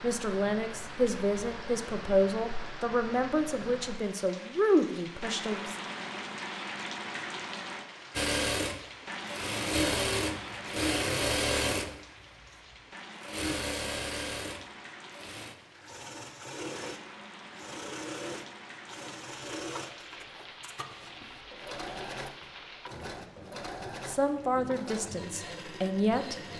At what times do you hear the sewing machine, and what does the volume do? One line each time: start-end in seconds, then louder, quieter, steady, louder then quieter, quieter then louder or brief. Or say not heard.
8.2-26.5 quieter.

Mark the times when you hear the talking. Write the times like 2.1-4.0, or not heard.
0.0-5.8, 24.1-26.4.